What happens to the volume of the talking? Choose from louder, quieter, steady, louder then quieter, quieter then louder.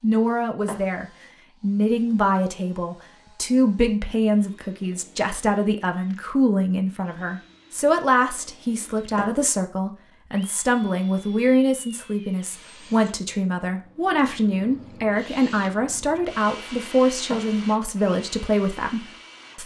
steady.